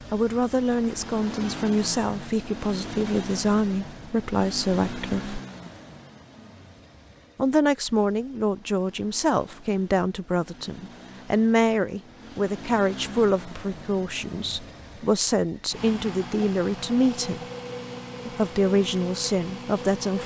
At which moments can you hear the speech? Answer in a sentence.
The speech can be heard from 0.1 to 5.4 s, from 7.3 to 17.4 s and from 18.2 to 20.2 s.